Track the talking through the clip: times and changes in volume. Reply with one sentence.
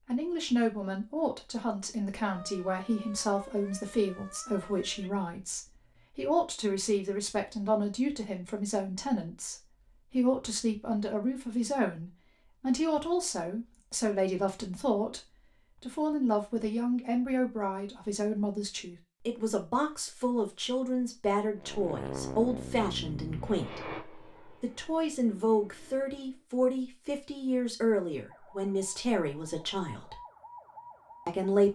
You can hear the talking from 0.1 to 30.2 s, at a steady volume; and briefly from 31.2 to 31.7 s.